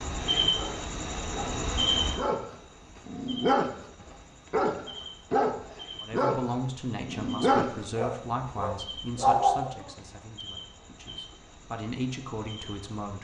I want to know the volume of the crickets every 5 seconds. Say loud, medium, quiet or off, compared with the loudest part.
loud, quiet, quiet.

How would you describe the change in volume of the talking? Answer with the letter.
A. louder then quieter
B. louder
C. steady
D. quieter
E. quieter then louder
E.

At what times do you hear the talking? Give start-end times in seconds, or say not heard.
6.0-13.1.